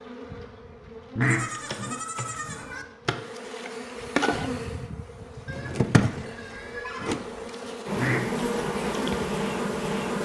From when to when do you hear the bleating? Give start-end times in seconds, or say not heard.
1.2-2.9, 5.5-7.5.